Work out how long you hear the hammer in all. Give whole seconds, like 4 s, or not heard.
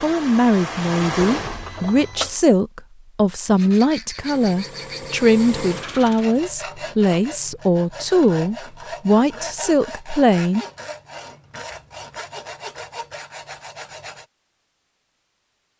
not heard.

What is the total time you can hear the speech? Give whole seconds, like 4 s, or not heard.
11 s.